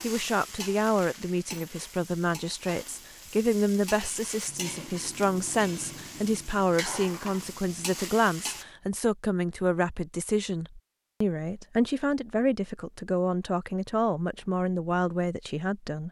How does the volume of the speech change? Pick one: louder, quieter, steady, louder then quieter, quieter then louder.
steady.